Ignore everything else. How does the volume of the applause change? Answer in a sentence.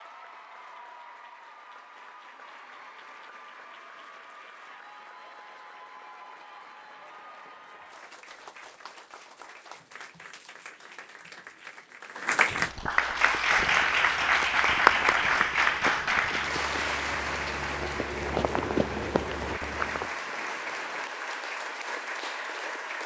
The volume of the applause goes up, then down.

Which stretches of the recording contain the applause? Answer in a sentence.
The applause can be heard from 0.0 to 23.0 s.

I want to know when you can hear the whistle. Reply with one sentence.
You can't hear the whistle here.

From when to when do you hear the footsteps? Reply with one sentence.
The footsteps can be heard from 13.0 to 20.1 s.